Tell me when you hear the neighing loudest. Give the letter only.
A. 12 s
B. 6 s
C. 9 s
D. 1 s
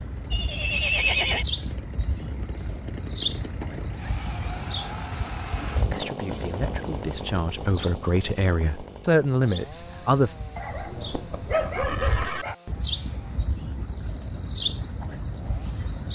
D.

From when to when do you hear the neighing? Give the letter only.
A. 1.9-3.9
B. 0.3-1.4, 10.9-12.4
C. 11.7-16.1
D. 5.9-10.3
B.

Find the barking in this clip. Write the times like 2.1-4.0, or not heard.
10.6-12.6.